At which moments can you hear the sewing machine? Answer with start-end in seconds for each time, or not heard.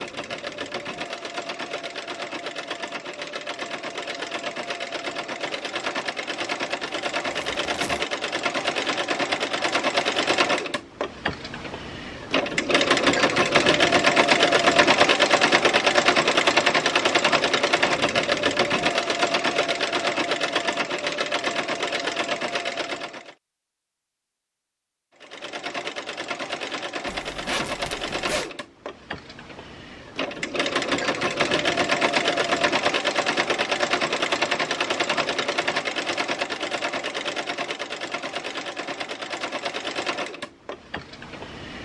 0.0-23.4, 25.1-41.8.